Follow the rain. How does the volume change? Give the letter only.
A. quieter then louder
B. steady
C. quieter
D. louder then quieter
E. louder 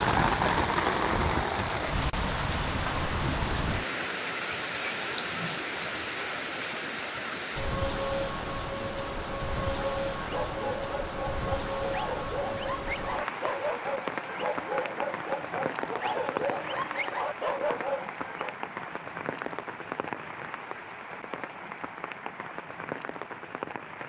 C.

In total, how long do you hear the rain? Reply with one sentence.
You can hear the rain for 24 seconds altogether.